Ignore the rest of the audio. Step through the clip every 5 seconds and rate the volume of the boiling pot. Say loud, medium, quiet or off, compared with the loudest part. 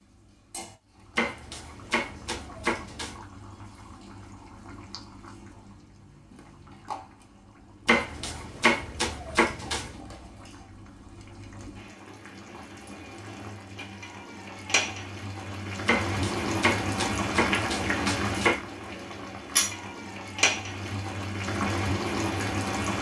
quiet, quiet, medium, loud, loud.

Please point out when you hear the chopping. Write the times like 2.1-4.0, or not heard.
1.1-3.2, 7.8-9.9, 15.8-18.6.